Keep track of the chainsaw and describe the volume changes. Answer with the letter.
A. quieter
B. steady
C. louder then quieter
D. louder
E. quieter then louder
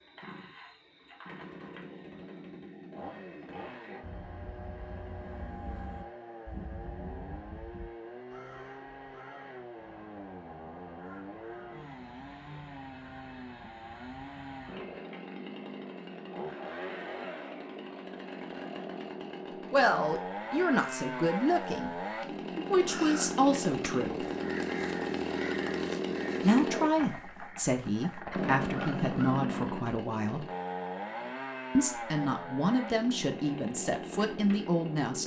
D.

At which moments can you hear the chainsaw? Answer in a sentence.
The chainsaw can be heard from 0.0 to 35.2 s.